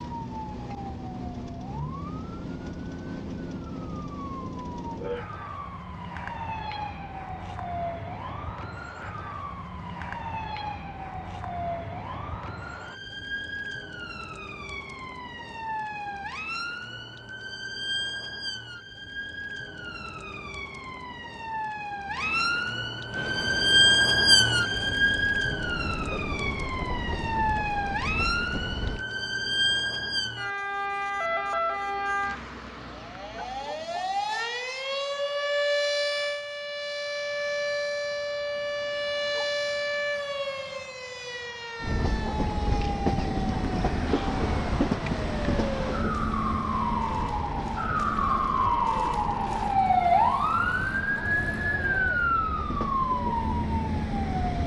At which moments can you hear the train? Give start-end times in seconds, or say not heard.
23.1-29.1, 41.8-54.6.